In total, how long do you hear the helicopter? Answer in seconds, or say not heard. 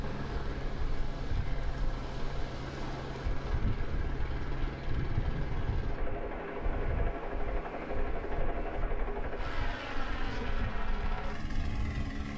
12 s.